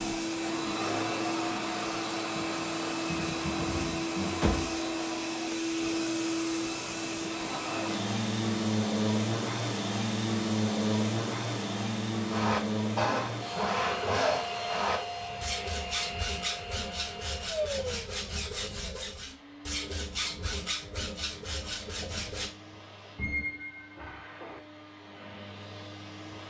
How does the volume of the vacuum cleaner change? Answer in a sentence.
The loudness of the vacuum cleaner goes down.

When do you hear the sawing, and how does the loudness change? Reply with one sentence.
The sawing can be heard from 12.2 to 22.5 s, getting quieter.